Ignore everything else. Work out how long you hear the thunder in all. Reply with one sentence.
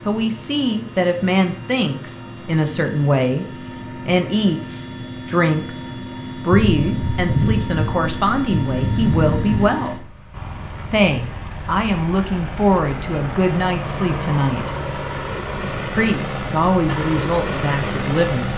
You can hear the thunder for 3 seconds altogether.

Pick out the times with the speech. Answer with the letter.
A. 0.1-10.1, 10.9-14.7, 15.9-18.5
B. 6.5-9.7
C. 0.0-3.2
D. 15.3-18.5
A.